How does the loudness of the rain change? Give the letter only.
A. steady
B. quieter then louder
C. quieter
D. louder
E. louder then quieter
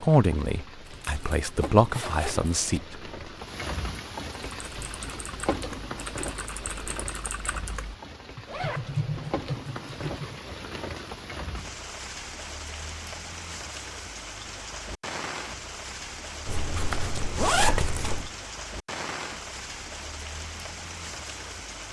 A.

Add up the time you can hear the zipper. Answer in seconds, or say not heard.
5 s.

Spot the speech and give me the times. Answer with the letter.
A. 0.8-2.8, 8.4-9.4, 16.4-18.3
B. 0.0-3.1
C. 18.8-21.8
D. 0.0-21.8
B.